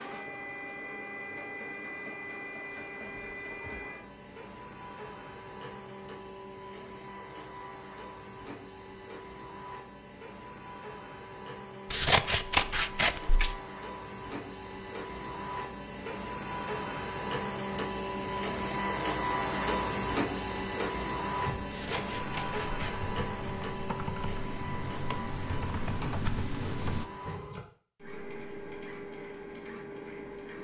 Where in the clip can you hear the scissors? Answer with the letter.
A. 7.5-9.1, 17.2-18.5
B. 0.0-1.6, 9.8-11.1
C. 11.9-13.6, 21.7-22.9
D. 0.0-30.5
C.